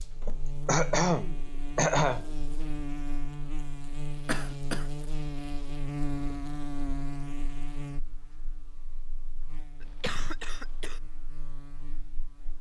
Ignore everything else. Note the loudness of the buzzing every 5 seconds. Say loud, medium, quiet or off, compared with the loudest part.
loud, loud, quiet.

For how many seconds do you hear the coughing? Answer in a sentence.
The coughing can be heard for 4 seconds in total.